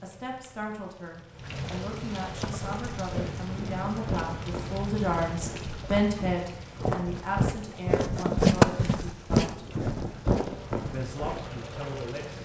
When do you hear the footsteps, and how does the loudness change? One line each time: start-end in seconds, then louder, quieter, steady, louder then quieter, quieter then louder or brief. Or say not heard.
2.4-11.4 louder then quieter.